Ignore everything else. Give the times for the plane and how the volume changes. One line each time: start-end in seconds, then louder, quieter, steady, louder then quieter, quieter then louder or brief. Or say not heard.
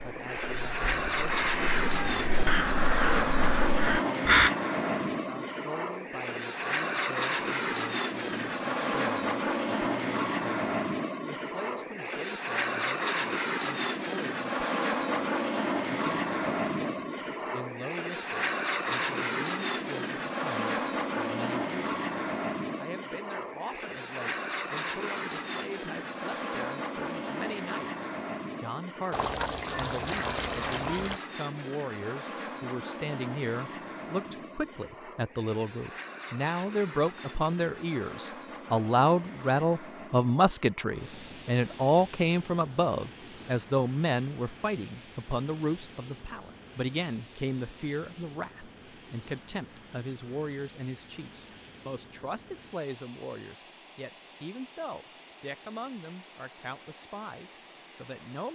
0.0-58.5 quieter.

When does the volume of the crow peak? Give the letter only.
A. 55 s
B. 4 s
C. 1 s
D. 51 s
B.